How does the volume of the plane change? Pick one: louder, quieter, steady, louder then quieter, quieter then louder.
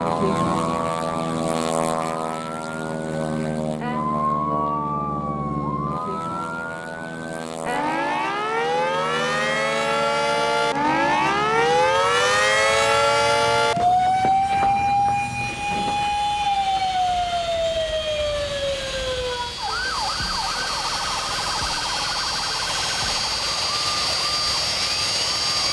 quieter then louder.